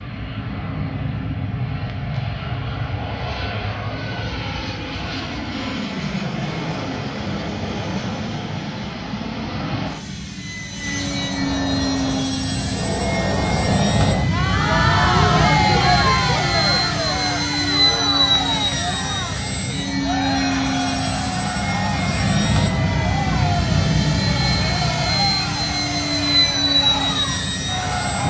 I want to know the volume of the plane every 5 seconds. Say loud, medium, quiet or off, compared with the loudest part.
medium, medium, loud, loud, loud, loud.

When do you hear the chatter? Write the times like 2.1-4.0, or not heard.
11.1-28.2.